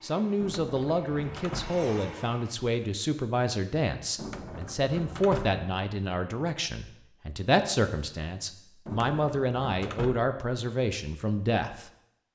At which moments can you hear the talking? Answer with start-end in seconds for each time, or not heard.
0.0-11.9.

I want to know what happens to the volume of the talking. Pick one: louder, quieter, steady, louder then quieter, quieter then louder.
steady.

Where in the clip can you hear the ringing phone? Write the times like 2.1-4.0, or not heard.
not heard.